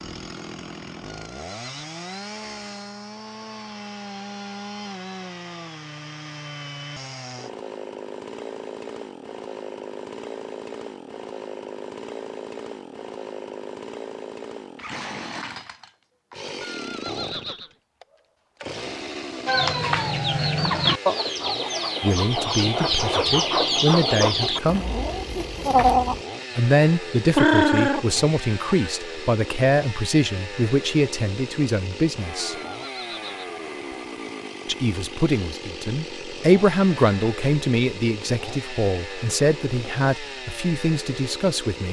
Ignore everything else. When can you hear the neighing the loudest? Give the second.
17 s.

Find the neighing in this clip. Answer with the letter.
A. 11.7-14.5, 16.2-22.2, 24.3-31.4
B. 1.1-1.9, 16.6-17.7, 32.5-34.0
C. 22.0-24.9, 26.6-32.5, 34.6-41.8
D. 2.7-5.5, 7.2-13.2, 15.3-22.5
B.